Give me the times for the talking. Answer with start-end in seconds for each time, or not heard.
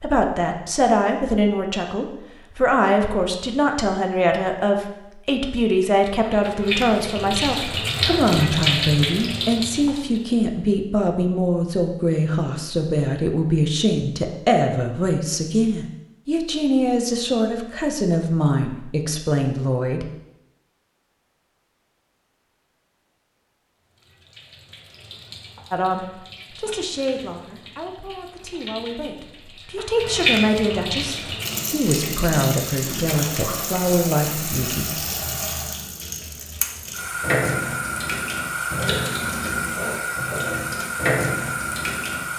0.0-20.1, 25.7-35.0.